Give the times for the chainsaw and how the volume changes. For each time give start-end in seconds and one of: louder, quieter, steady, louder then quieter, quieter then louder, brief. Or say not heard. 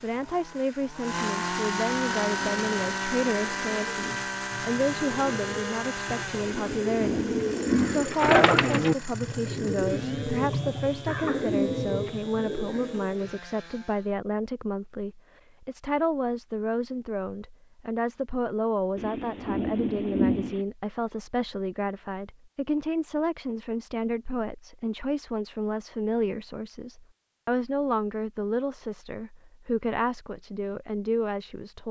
0.0-14.2 quieter.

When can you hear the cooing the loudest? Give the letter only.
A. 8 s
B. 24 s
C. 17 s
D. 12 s
A.